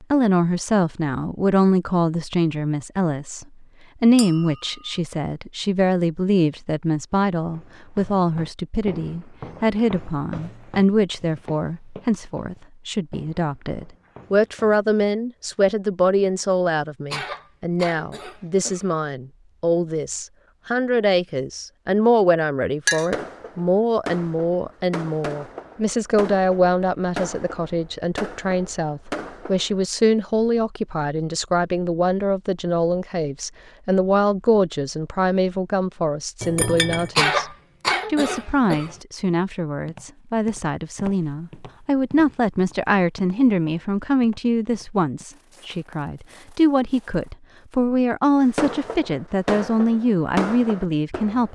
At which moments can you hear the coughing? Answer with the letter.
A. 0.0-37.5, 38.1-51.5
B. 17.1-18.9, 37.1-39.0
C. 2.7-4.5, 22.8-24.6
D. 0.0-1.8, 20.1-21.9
B.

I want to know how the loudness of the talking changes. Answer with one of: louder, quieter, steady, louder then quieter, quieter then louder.
steady.